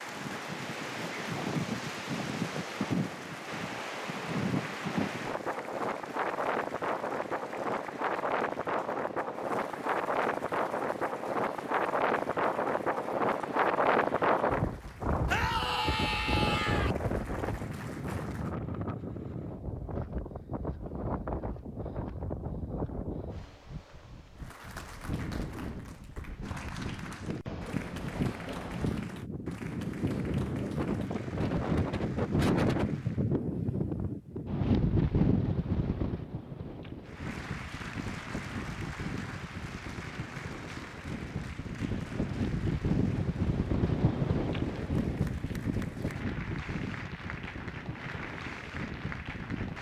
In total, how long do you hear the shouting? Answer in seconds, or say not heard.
2 s.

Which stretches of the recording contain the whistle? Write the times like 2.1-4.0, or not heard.
not heard.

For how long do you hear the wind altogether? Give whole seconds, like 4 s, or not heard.
50 s.